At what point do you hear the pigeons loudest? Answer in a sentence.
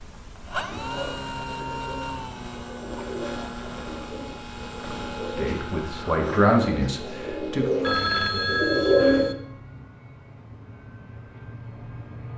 The loudest moment of the pigeons is at 9 seconds.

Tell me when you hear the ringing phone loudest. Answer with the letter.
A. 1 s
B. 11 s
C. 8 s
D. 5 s
C.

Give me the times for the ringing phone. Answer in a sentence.
You can hear the ringing phone from 7.8 to 9.3 s.